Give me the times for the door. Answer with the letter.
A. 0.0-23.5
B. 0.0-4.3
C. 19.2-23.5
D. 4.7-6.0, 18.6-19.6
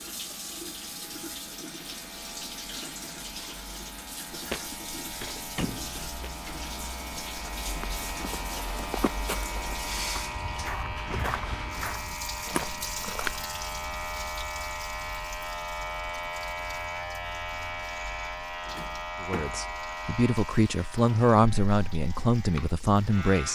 D.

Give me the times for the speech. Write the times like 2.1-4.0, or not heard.
19.2-23.5.